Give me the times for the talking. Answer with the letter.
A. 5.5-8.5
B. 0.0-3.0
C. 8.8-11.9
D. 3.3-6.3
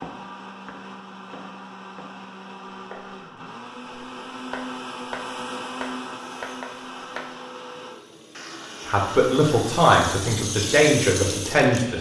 C.